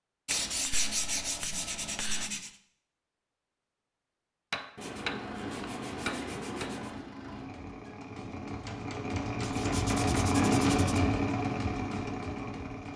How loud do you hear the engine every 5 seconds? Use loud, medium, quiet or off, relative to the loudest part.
off, medium, loud.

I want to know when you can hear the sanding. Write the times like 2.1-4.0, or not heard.
0.2-2.5, 4.8-7.0, 9.4-11.0.